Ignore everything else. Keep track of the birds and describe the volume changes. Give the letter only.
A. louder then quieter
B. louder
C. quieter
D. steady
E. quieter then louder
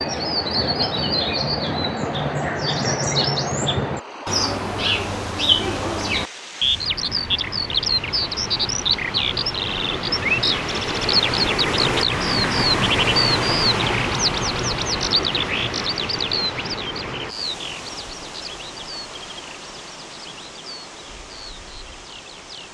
C.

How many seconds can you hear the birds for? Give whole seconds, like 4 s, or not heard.
23 s.